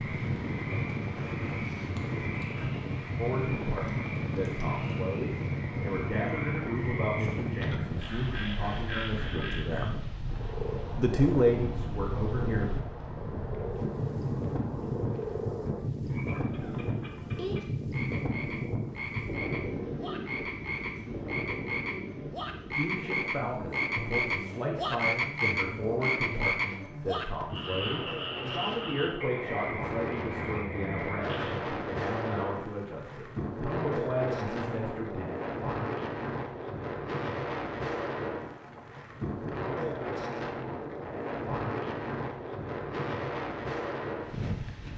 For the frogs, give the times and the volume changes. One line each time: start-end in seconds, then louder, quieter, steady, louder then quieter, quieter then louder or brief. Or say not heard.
0.0-31.6 louder.